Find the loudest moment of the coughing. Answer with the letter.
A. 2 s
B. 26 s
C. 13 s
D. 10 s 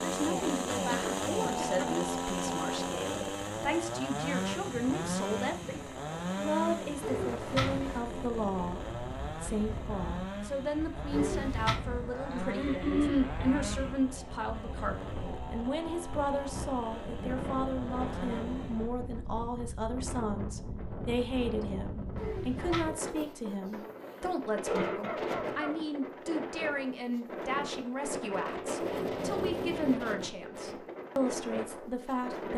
C.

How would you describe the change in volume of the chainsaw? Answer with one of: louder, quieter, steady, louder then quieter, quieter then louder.
quieter.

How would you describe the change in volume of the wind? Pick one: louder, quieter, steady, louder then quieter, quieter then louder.
louder.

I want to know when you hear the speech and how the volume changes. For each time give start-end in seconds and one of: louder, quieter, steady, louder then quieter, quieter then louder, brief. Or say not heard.
0.0-32.5 steady.